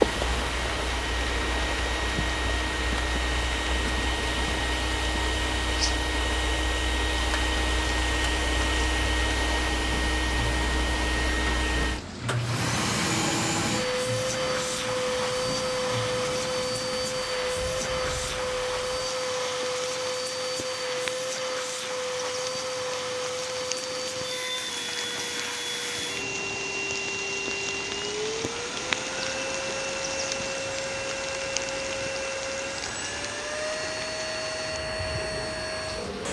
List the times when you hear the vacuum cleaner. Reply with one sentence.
You can hear the vacuum cleaner from 0.0 to 36.2 s.